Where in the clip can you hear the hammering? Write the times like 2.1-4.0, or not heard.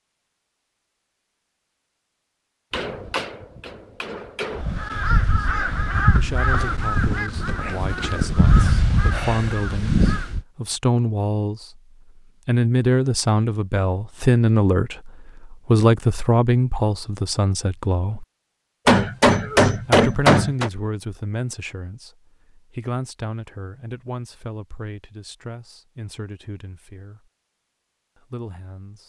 2.7-4.7, 18.9-20.7.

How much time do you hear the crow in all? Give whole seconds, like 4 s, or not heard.
6 s.